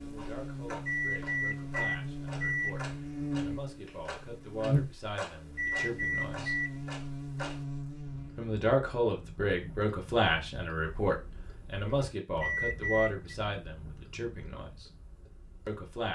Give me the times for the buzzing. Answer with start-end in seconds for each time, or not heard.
0.0-8.6.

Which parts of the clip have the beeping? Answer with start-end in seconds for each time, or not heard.
0.8-2.8, 5.5-6.7, 12.4-13.3.